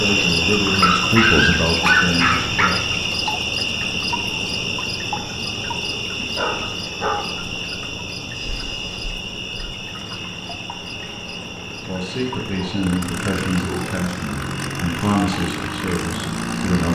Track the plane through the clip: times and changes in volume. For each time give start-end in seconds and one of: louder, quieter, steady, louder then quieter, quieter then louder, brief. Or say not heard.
8.3-16.9 louder.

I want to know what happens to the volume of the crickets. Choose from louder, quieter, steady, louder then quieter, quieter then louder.
quieter.